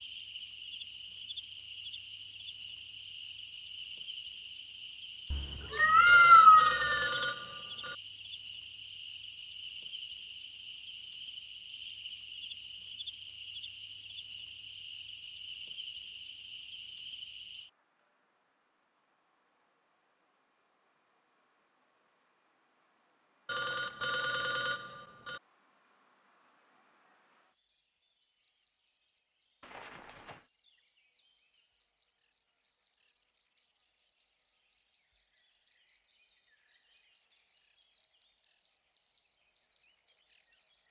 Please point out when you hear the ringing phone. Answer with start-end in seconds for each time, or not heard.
6.0-8.0, 23.4-25.4, 29.6-30.5.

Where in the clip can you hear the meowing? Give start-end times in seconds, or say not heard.
5.3-7.1.